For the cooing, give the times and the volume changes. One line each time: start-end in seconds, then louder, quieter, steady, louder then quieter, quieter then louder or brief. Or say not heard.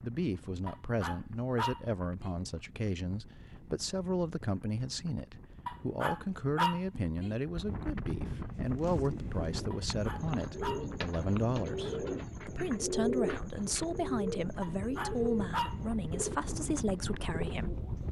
8.6-18.0 louder then quieter.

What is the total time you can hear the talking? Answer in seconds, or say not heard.
18 s.